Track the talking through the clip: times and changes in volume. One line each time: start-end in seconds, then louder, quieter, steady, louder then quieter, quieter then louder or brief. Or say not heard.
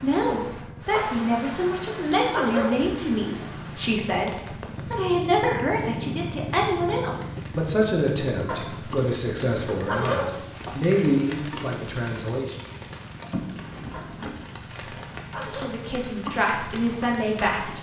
0.0-12.6 steady
15.3-17.7 brief.